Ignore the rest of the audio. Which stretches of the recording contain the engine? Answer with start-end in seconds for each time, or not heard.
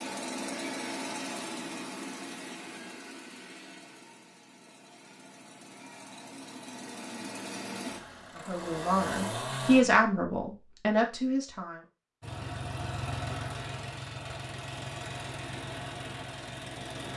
0.0-9.8, 12.2-17.1.